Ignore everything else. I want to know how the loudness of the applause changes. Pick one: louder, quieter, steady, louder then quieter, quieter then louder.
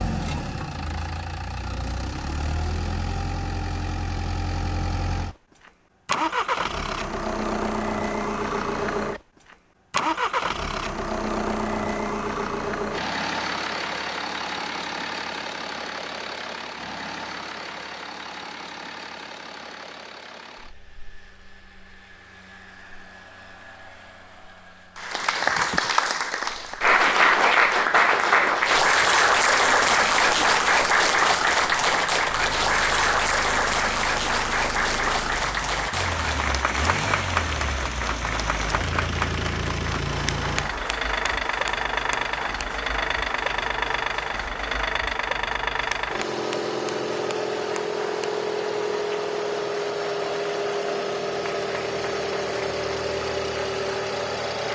quieter.